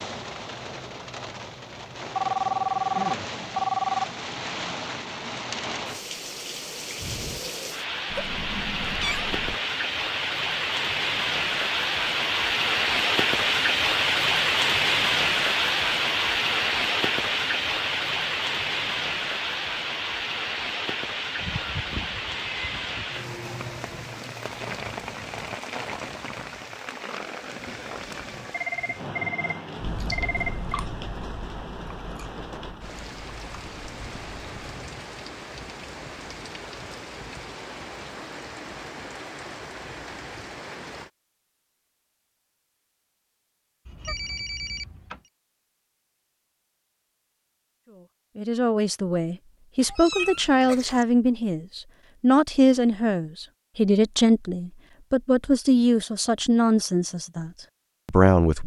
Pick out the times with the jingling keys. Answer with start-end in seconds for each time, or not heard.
not heard.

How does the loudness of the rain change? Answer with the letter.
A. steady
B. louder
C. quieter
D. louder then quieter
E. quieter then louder
D.